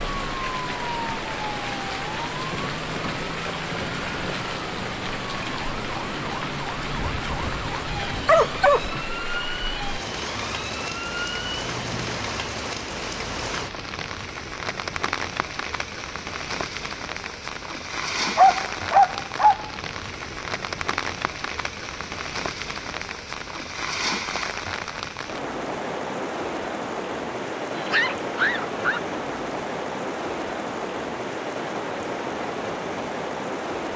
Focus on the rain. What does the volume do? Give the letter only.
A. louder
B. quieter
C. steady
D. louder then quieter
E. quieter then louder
C.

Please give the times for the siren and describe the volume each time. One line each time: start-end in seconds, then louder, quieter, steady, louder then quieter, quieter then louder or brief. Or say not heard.
0.0-12.2 steady.